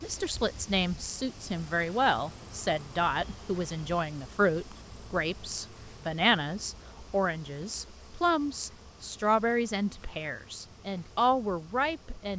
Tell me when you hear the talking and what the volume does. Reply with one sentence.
You can hear the talking from 0.0 to 12.3 s, at a steady volume.